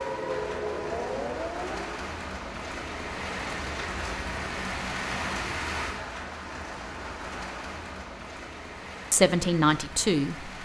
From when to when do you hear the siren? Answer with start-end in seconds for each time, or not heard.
0.0-1.9.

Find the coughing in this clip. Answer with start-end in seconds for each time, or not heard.
not heard.